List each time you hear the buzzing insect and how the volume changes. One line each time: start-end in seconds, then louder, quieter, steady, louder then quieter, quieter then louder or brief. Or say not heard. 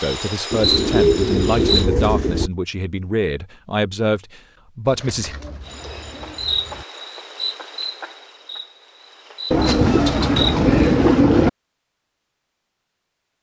0.0-1.9 brief
5.7-11.2 quieter then louder.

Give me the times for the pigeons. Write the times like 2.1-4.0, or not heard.
0.5-2.5, 4.8-6.8, 9.5-11.5.